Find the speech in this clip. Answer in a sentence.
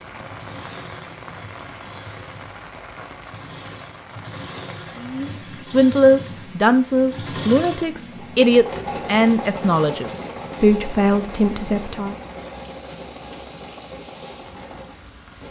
The speech can be heard from 5.0 to 12.2 s.